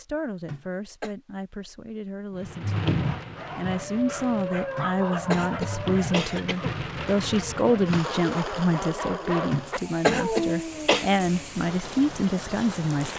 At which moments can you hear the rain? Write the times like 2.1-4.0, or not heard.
2.4-13.1.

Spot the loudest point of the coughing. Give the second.
10 s.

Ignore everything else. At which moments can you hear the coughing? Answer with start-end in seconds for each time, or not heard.
0.5-1.1, 4.8-6.8, 9.5-11.1.